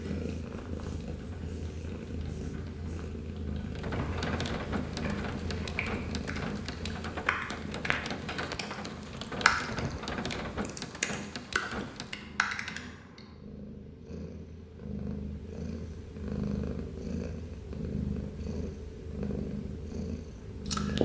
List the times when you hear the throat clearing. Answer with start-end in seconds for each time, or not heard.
not heard.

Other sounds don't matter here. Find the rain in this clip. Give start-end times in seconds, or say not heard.
0.0-12.2.